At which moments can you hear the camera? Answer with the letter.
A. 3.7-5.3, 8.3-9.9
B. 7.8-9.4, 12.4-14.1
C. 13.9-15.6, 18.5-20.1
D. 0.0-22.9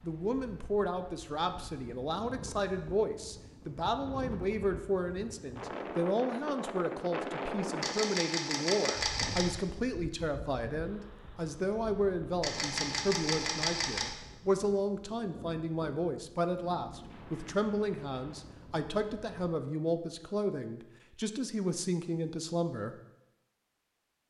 B.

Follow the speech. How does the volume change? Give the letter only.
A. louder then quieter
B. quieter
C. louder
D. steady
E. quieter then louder
D.